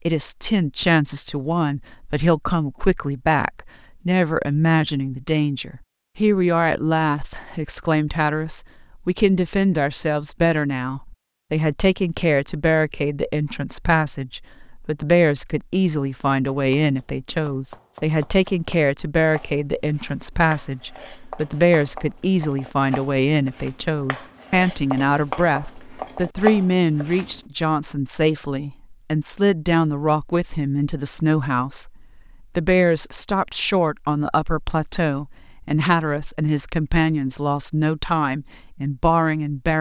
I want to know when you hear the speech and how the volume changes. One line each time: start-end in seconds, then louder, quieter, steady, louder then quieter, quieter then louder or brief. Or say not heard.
0.1-39.7 steady.